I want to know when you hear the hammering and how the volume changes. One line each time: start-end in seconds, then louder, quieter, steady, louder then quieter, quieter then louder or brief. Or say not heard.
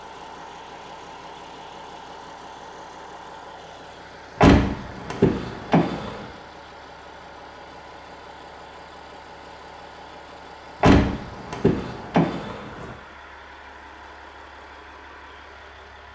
not heard.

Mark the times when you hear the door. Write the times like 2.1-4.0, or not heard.
4.4-6.2, 10.8-12.9.